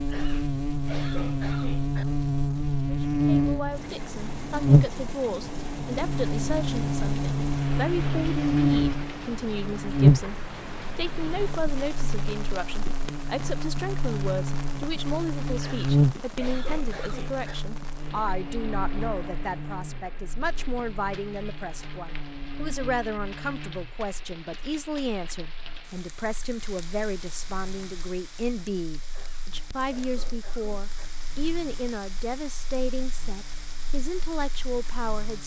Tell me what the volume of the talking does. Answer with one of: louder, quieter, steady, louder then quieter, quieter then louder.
steady.